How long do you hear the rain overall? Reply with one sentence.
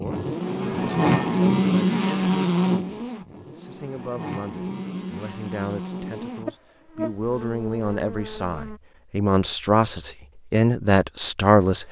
You can't hear the rain here.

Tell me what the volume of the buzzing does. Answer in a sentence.
The volume of the buzzing goes down.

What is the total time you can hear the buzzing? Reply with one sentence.
You can hear the buzzing for 9 seconds altogether.